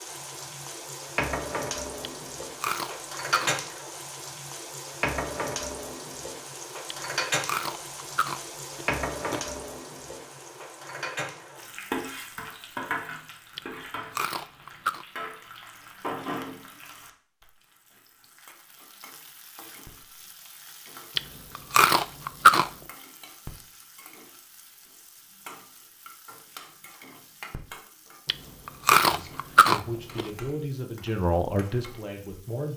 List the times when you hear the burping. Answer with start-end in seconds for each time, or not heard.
not heard.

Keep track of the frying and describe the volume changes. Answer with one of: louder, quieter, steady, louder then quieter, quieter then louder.
quieter.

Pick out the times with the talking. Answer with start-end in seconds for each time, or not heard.
29.1-32.7.